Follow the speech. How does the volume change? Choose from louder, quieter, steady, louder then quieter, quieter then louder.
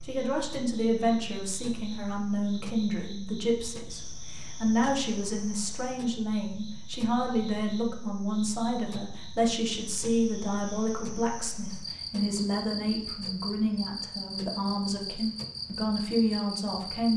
steady.